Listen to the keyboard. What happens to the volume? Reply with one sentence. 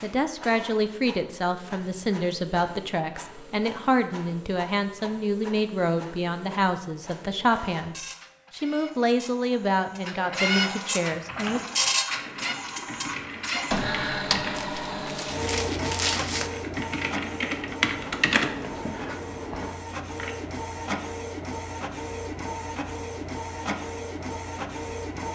The volume of the keyboard goes up, then down.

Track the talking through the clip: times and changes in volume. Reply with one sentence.
You can hear the talking from 0.0 to 11.8 s, at a steady volume.